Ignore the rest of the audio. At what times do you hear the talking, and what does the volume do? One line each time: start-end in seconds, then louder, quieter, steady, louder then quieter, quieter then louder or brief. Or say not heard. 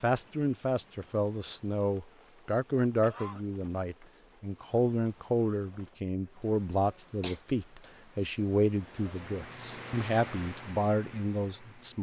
0.0-11.9 steady.